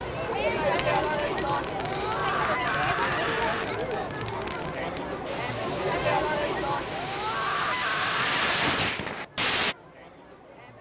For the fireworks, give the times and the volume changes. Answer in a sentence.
You can hear the fireworks from 0.6 to 9.8 s, getting louder.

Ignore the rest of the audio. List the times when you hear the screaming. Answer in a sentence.
You can hear the screaming from 1.8 to 3.6 s and from 6.9 to 8.8 s.